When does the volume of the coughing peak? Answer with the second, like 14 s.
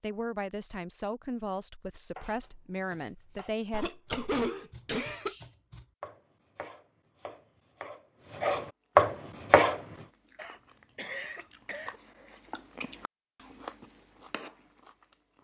4 s.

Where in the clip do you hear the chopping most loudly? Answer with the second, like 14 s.
9 s.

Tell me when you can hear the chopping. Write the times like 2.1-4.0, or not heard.
2.1-9.8.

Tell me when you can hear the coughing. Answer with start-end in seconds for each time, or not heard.
3.7-5.3, 10.3-12.0.